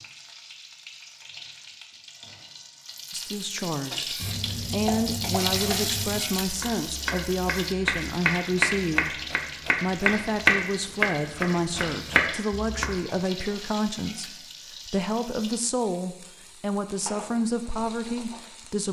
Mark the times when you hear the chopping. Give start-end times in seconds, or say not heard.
4.2-13.0.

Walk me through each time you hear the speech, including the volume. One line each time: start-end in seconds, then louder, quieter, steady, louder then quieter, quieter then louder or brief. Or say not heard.
3.1-18.8 steady.